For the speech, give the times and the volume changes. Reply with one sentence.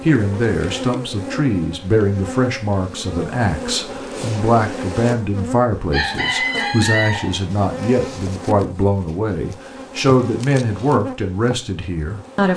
The speech can be heard from 0.0 to 12.5 s, at a steady volume.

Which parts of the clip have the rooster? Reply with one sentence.
You can hear the rooster from 5.9 to 7.3 s.